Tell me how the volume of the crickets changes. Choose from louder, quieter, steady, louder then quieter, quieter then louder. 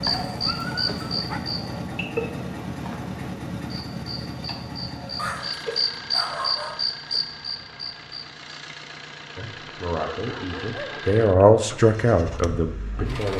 quieter then louder.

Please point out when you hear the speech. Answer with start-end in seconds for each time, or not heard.
9.3-13.3.